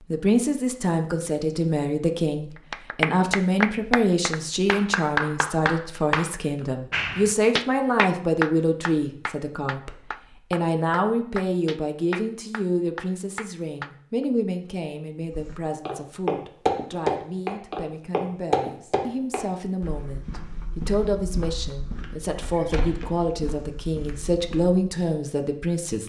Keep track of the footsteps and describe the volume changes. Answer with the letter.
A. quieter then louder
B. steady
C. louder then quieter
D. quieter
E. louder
D.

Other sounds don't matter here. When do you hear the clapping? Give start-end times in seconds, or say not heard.
2.7-14.2.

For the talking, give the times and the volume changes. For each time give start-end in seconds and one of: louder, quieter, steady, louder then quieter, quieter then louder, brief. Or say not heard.
0.0-26.0 quieter then louder.